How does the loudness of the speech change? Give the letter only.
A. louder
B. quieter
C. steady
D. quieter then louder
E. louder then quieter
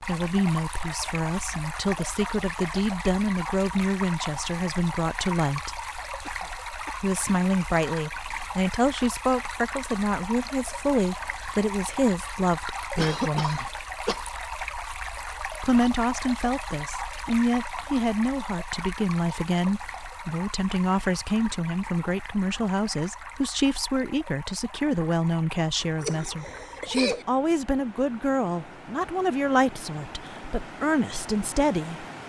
C.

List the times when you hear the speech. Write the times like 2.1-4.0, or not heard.
0.0-5.8, 7.0-13.7, 15.6-32.0.